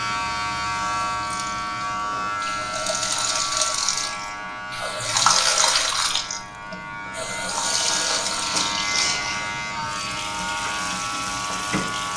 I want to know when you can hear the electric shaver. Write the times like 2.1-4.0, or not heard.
0.0-12.1.